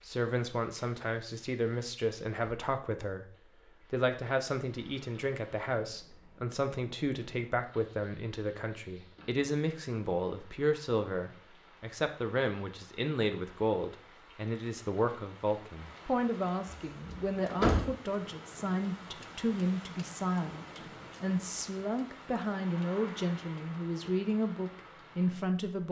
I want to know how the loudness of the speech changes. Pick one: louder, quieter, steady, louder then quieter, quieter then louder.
steady.